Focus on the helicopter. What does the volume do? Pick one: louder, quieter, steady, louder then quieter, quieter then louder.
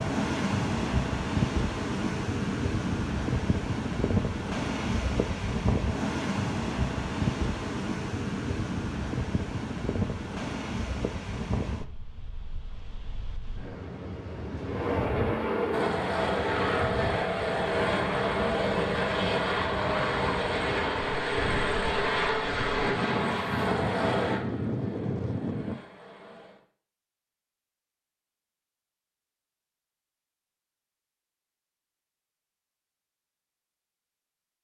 quieter.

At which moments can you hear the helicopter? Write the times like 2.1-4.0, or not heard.
14.7-26.6.